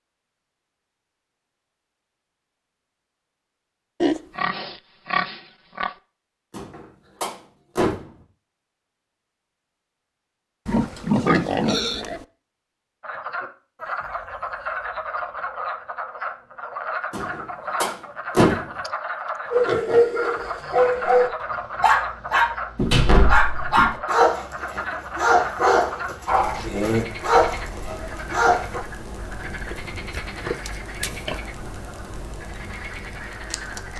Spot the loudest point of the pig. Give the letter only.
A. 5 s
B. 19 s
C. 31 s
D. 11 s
D.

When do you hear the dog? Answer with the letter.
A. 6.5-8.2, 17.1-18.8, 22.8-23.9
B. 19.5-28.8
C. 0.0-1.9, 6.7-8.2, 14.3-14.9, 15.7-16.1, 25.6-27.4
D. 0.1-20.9
B.